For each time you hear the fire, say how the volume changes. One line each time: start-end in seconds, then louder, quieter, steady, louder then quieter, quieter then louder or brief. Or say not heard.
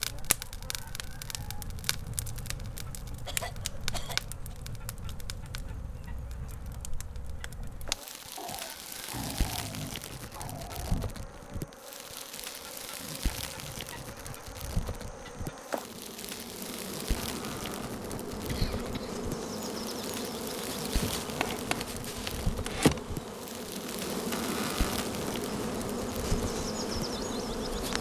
0.0-27.9 steady.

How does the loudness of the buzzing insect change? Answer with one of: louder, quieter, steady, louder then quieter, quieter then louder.
louder.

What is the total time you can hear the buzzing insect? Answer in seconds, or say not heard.
28 s.